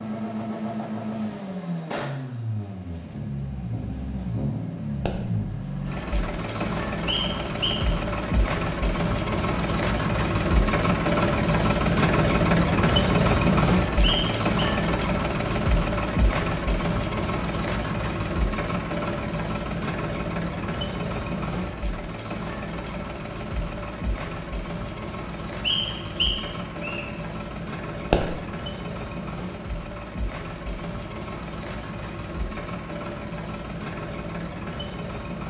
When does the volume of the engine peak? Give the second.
13 s.